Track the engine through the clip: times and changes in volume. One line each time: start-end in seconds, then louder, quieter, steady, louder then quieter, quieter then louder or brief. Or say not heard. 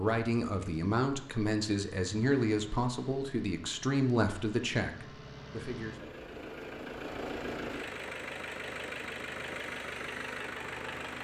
0.0-11.1 louder.